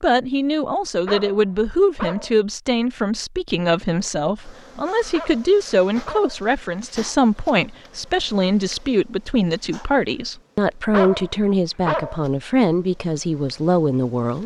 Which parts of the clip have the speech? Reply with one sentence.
The speech can be heard from 0.0 to 14.4 s.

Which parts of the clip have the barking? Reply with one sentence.
The barking can be heard from 1.1 to 2.4 s, from 5.1 to 6.5 s and from 10.9 to 12.2 s.